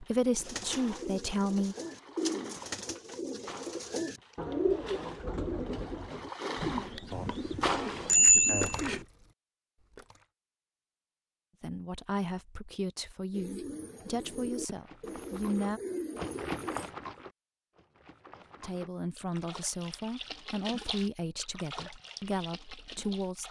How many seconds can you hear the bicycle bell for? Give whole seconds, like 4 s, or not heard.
2 s.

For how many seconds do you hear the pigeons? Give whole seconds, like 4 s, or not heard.
12 s.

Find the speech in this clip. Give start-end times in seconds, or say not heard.
0.0-1.8, 11.6-15.8, 18.6-23.4.